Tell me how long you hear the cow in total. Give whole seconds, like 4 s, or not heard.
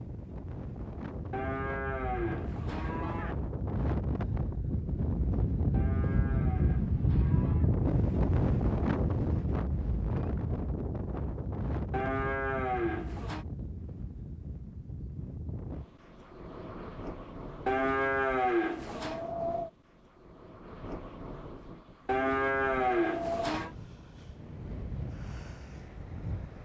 9 s.